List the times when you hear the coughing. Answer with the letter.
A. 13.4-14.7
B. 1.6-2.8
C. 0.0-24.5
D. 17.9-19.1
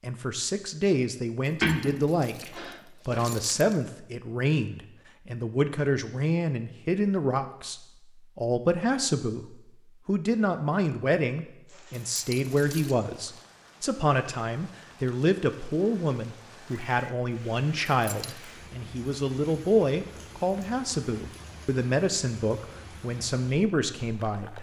B.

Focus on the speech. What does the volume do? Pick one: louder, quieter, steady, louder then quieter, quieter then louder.
steady.